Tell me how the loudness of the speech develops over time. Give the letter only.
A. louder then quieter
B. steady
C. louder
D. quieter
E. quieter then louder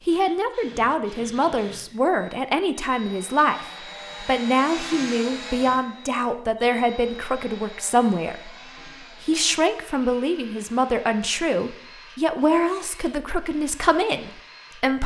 B.